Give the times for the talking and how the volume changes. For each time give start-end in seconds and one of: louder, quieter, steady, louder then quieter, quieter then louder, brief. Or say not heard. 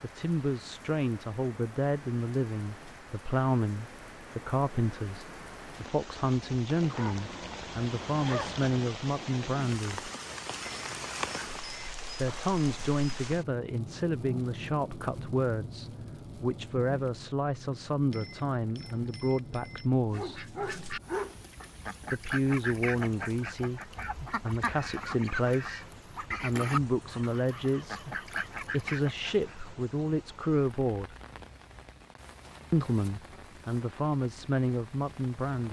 0.0-10.1 steady
12.1-20.5 steady
22.1-31.1 steady
32.7-35.6 brief.